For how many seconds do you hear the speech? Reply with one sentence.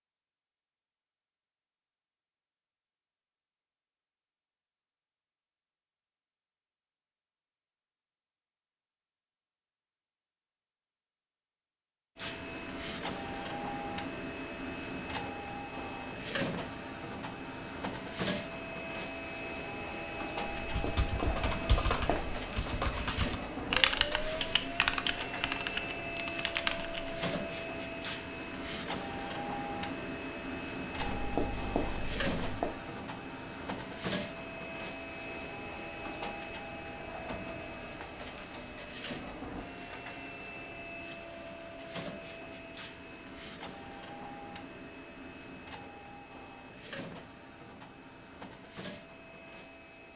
You can't hear the speech here.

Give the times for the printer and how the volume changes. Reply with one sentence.
The printer can be heard from 12.2 to 50.1 s, getting quieter.